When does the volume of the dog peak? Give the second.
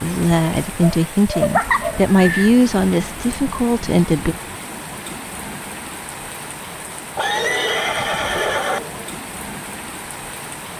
2 s.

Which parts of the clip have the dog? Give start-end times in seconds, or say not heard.
0.7-2.0, 7.2-9.1.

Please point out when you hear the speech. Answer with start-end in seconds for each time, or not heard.
0.0-4.3.